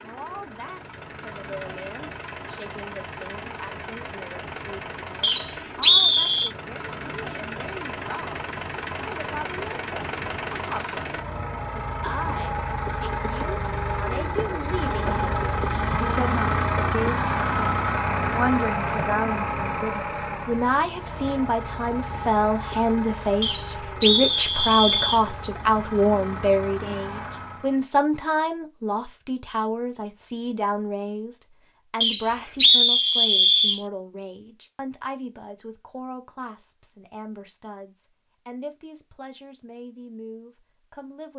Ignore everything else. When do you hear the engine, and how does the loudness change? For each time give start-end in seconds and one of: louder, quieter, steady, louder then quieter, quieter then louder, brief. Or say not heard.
0.0-27.8 louder then quieter.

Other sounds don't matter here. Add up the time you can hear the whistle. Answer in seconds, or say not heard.
5 s.